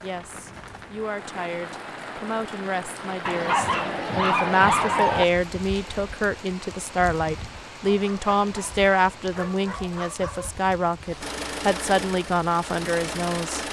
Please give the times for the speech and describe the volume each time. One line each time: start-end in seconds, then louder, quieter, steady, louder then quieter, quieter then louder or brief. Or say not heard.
0.0-13.6 louder.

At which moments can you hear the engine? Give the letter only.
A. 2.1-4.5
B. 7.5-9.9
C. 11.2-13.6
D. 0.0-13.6
C.